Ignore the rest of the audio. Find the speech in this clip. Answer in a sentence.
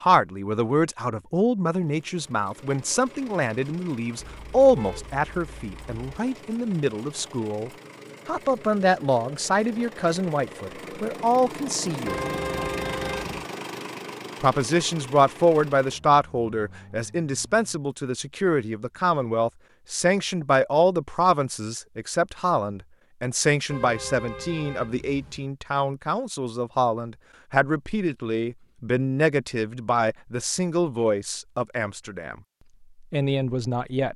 You can hear the speech from 0.0 to 12.2 s, from 14.4 to 32.4 s and from 33.1 to 34.1 s.